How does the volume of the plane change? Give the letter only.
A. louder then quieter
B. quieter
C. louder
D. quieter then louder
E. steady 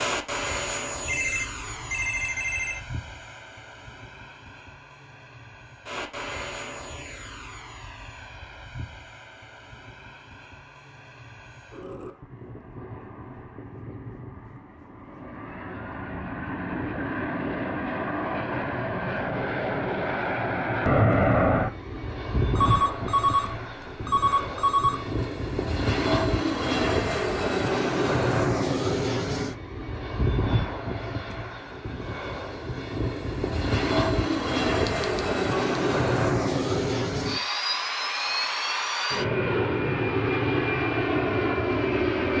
C.